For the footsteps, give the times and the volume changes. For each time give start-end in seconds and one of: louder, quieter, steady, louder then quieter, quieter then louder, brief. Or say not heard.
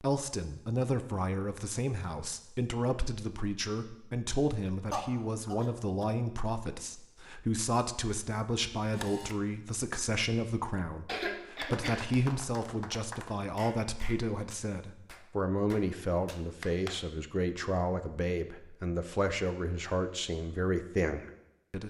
not heard.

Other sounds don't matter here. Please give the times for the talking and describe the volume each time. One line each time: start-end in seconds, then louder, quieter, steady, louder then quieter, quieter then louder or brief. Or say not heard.
0.0-21.8 steady.